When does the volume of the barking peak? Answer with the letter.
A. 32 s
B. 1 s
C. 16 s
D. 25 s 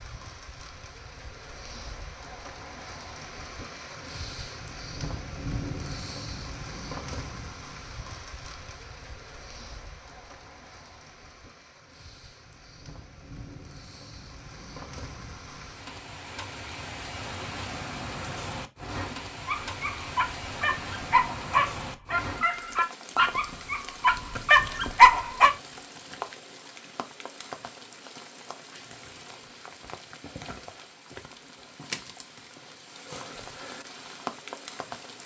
D.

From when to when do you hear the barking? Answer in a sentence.
You can hear the barking from 19.4 to 25.5 s.